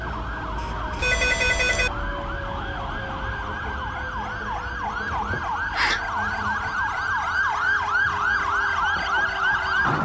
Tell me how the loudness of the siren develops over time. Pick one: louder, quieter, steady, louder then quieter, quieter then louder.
louder.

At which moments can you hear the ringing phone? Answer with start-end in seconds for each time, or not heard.
0.9-1.9.